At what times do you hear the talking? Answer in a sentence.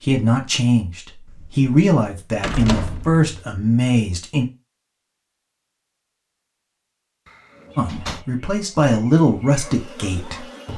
The talking can be heard from 0.0 to 4.5 s and from 7.8 to 10.7 s.